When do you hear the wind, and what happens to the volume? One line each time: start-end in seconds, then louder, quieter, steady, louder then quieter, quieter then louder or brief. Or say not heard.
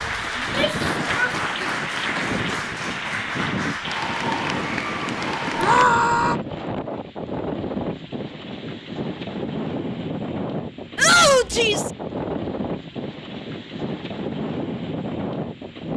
0.0-15.9 steady.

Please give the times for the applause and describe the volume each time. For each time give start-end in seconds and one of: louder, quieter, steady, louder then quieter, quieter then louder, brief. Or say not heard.
0.0-5.8 steady.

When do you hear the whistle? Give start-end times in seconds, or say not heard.
not heard.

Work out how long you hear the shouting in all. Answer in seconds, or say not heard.
3 s.